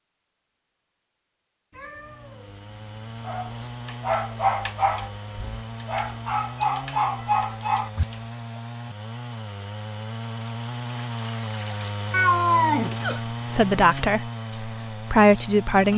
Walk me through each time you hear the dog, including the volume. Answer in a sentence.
You can hear the dog from 3.2 to 8.2 s, getting quieter then louder.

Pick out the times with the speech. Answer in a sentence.
You can hear the speech from 13.5 to 15.9 s.